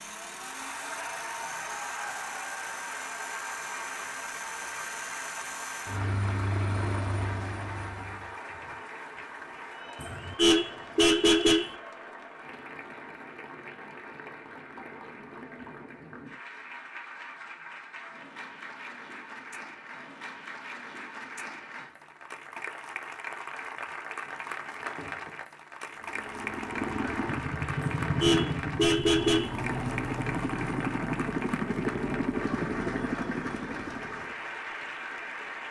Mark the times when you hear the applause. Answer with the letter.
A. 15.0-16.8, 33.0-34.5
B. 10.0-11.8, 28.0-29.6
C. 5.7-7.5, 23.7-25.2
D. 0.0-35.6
D.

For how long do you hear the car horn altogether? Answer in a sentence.
You can hear the car horn for 3 seconds altogether.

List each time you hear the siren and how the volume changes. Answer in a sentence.
You can't hear the siren here.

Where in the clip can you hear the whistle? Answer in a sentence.
You can't hear the whistle here.